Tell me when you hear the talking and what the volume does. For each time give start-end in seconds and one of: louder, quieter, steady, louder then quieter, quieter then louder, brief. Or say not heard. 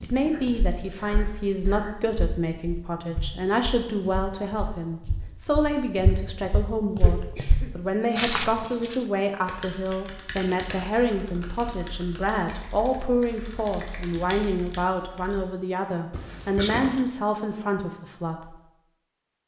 0.0-18.6 steady.